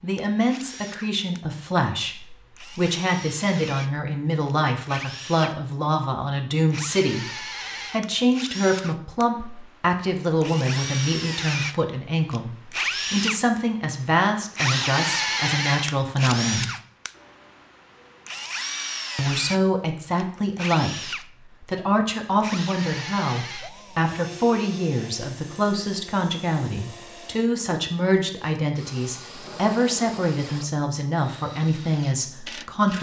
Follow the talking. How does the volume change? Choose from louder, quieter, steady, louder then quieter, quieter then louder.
steady.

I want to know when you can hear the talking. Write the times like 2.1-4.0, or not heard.
0.0-16.7, 19.1-32.9.